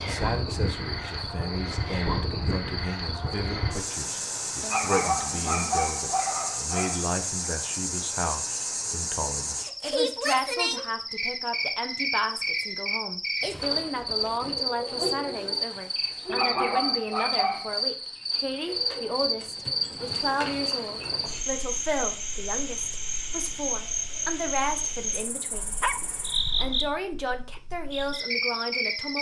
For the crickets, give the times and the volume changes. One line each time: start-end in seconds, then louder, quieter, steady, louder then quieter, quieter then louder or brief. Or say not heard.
0.0-29.1 steady.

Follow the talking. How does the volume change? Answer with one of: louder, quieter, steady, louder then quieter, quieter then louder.
steady.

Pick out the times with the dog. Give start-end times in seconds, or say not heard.
4.6-7.5, 16.2-17.9, 25.5-26.8.